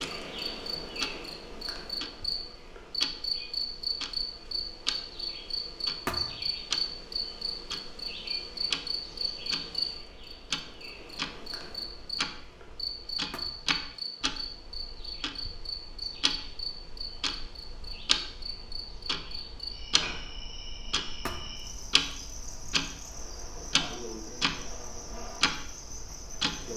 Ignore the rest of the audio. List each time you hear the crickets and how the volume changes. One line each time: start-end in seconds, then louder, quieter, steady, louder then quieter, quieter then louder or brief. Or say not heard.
0.0-26.7 quieter.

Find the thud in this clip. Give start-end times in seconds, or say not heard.
6.0-6.5, 13.3-13.8, 21.2-21.7.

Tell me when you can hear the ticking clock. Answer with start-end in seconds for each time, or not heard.
0.0-26.7.